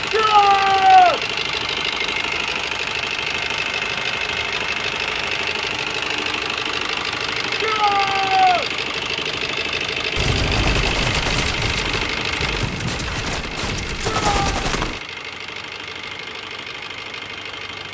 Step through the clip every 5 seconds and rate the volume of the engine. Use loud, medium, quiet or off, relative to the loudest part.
loud, loud, loud, medium.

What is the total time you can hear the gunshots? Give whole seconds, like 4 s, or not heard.
5 s.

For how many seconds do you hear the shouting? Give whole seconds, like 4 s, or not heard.
3 s.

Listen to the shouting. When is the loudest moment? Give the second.
1 s.